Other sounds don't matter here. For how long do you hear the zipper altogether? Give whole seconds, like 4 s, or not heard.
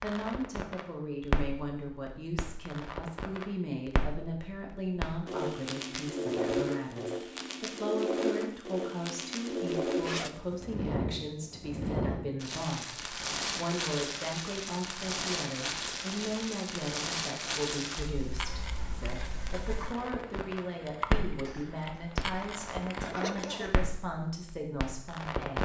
3 s.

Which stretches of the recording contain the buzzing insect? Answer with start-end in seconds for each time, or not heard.
18.3-23.8.